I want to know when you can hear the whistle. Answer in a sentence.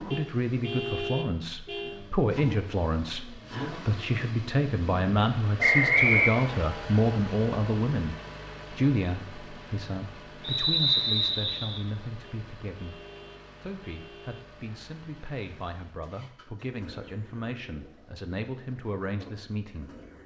You can hear the whistle from 5.6 to 6.3 s and from 10.4 to 11.8 s.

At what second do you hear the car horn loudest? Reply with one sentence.
The loudest moment of the car horn is at 1 second.